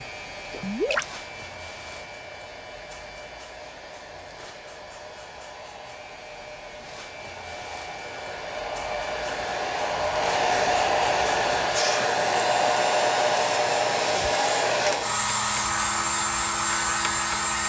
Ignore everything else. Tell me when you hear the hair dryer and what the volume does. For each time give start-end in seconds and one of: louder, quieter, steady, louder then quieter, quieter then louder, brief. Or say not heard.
0.0-17.6 louder.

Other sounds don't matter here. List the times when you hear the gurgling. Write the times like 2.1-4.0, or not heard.
0.5-1.1.